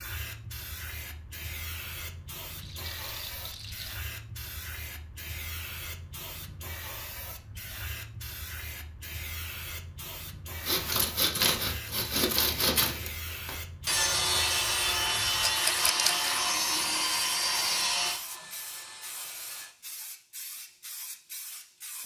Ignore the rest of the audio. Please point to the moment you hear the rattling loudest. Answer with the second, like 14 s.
16 s.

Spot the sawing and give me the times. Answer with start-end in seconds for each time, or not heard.
10.6-19.8.